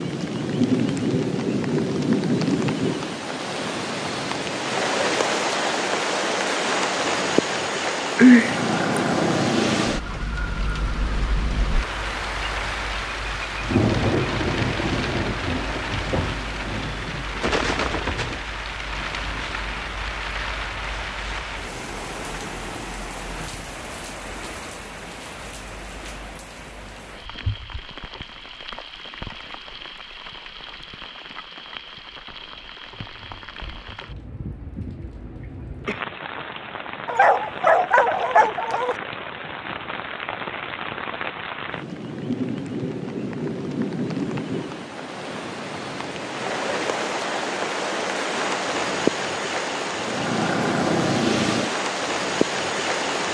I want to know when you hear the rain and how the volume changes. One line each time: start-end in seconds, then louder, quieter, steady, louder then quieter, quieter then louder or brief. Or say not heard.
0.0-53.3 quieter then louder.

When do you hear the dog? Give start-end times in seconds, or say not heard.
37.0-39.0.